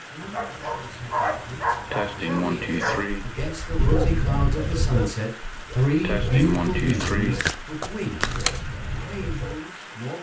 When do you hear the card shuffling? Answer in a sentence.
The card shuffling can be heard from 6.5 to 8.6 s.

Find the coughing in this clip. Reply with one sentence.
The coughing can be heard from 1.9 to 3.2 s and from 6.0 to 7.4 s.